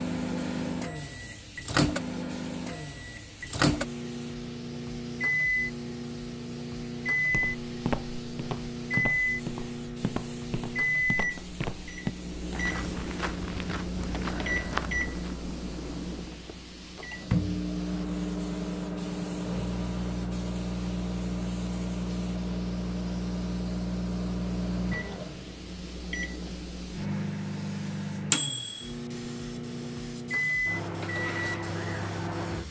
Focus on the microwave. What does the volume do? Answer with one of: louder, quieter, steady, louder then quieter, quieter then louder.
steady.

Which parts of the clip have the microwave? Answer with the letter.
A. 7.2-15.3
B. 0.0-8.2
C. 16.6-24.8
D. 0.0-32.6
D.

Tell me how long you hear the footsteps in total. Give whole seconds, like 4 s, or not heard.
8 s.